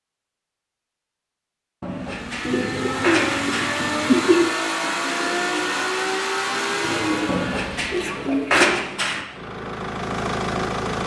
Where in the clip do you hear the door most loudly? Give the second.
9 s.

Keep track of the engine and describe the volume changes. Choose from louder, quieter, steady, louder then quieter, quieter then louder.
quieter then louder.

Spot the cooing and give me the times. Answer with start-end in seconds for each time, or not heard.
2.4-8.8.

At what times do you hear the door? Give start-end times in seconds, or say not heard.
1.8-3.8, 7.2-9.2.